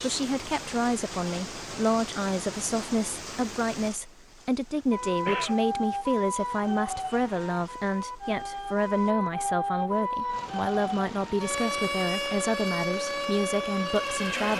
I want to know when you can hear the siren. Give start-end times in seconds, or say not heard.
4.9-14.5.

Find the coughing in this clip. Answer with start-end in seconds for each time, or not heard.
4.8-5.6.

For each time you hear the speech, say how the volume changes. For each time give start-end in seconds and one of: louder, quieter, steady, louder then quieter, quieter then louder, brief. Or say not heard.
0.0-14.5 steady.